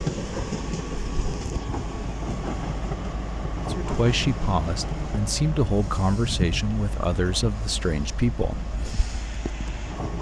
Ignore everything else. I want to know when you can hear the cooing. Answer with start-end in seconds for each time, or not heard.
not heard.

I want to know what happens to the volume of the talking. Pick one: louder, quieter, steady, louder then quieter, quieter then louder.
steady.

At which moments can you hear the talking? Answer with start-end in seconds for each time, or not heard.
3.5-8.9.